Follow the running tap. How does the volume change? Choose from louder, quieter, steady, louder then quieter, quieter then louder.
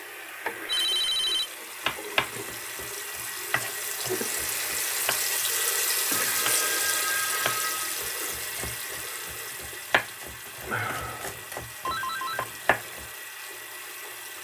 louder then quieter.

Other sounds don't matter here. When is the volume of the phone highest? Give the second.
1 s.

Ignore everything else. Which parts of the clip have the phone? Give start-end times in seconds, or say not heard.
0.7-1.5, 6.1-8.0, 11.8-12.6.